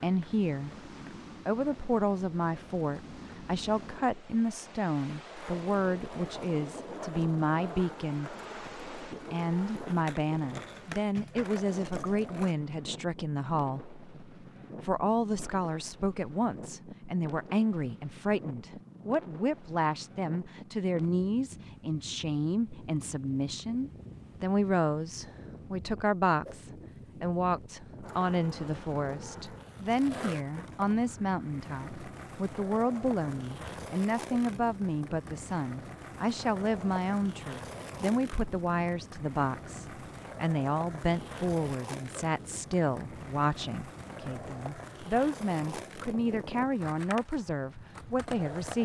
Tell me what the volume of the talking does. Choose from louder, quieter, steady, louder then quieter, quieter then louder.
steady.